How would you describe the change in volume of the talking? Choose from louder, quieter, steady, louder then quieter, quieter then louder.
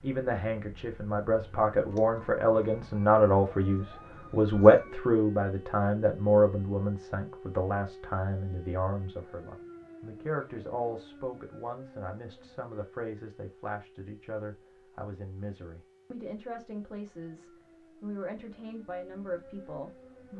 quieter.